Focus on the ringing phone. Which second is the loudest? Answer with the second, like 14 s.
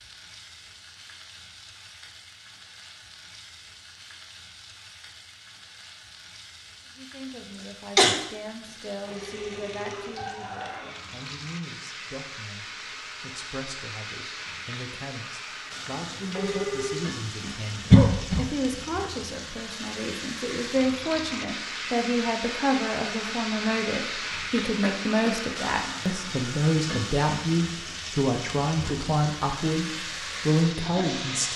17 s.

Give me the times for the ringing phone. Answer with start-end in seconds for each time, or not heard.
8.7-10.2, 16.1-17.1.